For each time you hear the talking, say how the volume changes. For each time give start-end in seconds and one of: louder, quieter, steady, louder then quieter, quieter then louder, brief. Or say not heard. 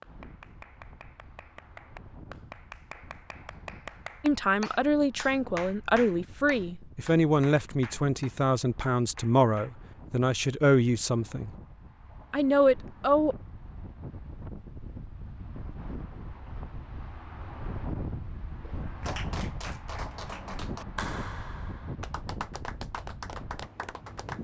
4.2-11.5 steady
12.3-13.3 brief.